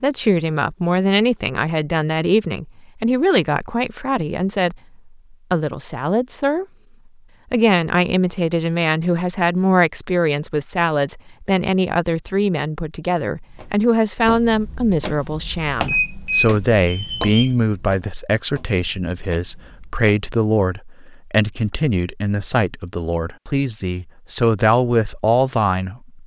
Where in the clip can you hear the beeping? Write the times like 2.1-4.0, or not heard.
15.8-17.4.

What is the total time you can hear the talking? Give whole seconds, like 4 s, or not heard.
25 s.